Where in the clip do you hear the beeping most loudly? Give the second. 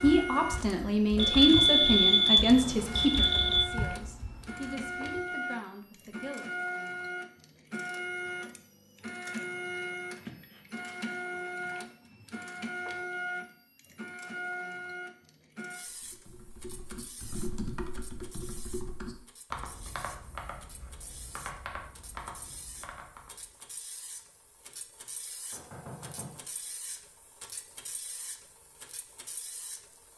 2 s.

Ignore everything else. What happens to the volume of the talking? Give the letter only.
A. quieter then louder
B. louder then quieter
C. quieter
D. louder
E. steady
C.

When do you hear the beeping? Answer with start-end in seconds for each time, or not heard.
1.1-3.6.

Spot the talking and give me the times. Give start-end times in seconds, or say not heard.
0.0-6.5.